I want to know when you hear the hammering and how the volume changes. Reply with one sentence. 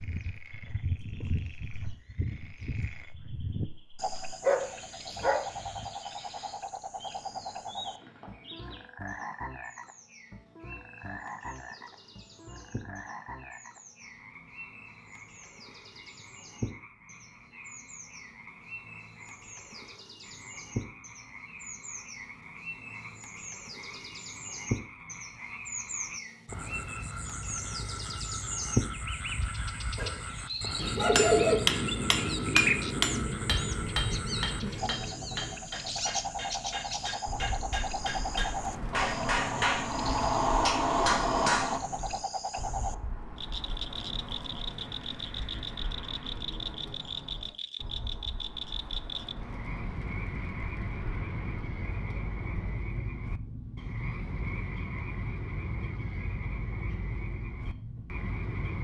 The hammering can be heard from 30.8 to 41.8 s, getting quieter then louder.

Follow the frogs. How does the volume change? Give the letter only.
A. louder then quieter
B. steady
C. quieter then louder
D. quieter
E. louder
C.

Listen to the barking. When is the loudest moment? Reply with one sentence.
The volume of the barking peaks at 31 seconds.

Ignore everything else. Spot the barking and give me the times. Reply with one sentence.
The barking can be heard from 4.4 to 5.8 s and from 29.9 to 31.6 s.